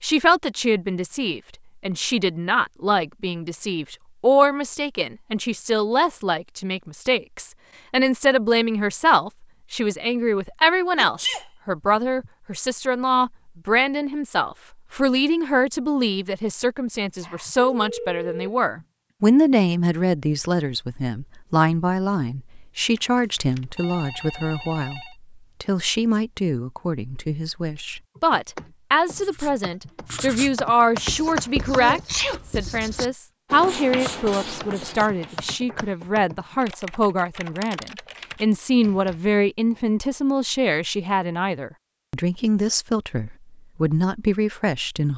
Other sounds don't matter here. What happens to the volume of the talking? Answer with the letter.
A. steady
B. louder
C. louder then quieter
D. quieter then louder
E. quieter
A.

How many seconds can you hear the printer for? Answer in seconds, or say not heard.
not heard.